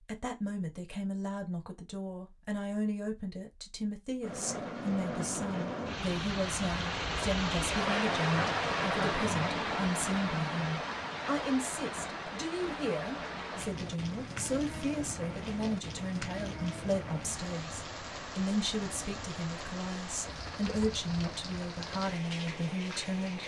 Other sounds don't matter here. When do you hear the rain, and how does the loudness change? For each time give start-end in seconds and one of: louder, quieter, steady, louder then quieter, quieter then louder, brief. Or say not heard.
4.2-23.4 quieter.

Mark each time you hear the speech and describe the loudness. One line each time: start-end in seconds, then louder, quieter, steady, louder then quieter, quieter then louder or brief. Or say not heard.
0.1-23.4 steady.